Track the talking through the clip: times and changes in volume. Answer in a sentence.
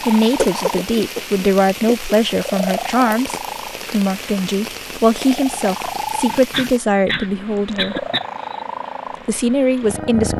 You can hear the talking from 0.0 to 8.1 s, at a steady volume; and briefly from 9.2 to 10.3 s.